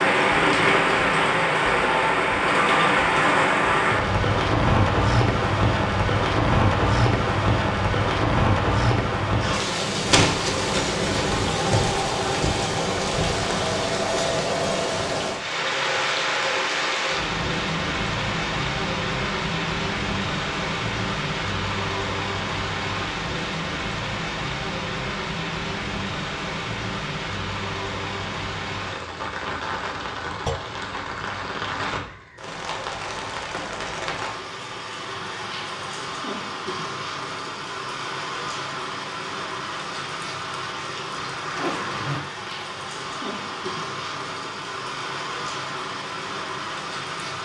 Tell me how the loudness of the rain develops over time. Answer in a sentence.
The volume of the rain goes down.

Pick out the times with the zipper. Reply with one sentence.
The zipper can be heard from 41.4 to 42.6 s.